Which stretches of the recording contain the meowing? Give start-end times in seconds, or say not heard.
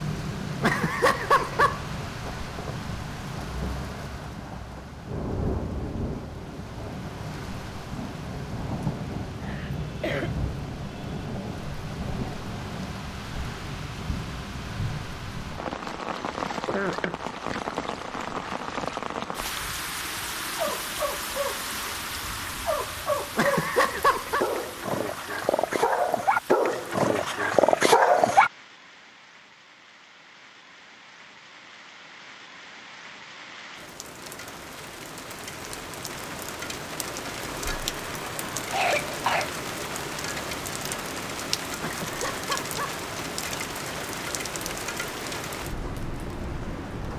0.6-1.8, 23.4-24.4, 41.8-43.0.